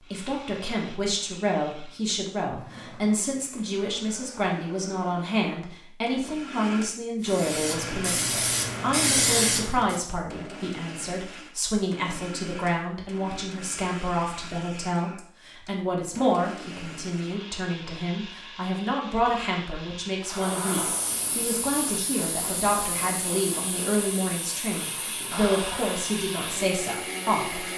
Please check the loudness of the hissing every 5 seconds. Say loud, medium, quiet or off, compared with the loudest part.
off, loud, off, off, medium, medium.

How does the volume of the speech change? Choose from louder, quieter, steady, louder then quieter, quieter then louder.
steady.